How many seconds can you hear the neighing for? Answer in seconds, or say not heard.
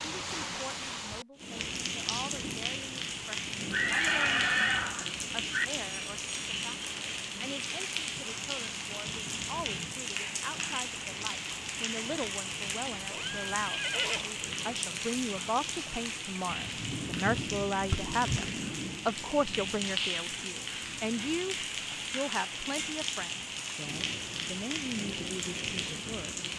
4 s.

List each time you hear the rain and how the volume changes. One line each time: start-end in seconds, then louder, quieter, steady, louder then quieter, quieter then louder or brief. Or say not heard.
0.0-26.5 steady.